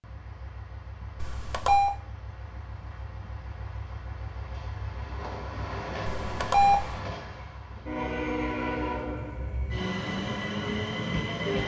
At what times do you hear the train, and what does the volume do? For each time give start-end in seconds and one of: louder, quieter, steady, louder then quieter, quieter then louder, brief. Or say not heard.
0.0-11.6 louder.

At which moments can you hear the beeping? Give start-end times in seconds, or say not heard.
1.2-1.9, 6.0-7.0.